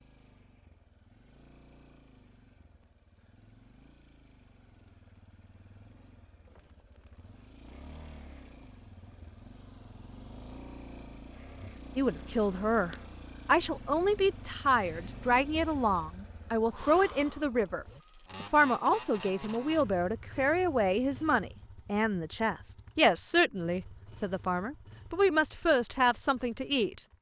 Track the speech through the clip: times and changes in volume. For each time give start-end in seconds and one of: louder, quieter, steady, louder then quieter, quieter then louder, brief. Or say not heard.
11.9-27.0 steady.